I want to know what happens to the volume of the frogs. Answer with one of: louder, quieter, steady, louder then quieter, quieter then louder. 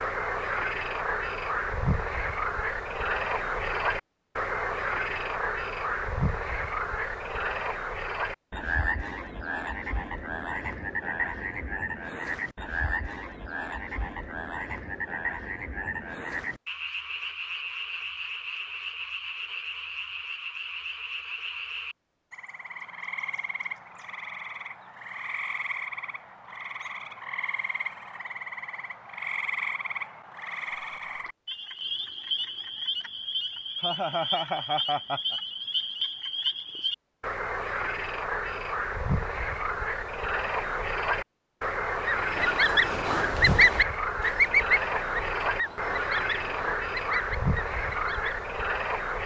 quieter then louder.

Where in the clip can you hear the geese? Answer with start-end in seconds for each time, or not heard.
42.0-48.4.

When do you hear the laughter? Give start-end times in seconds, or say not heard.
33.8-35.4.